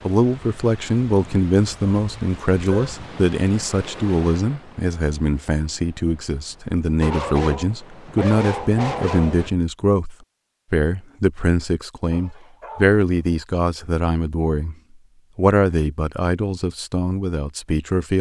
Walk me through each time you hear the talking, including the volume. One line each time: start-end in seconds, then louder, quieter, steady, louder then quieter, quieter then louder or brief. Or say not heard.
0.1-14.8 steady
15.3-18.1 brief.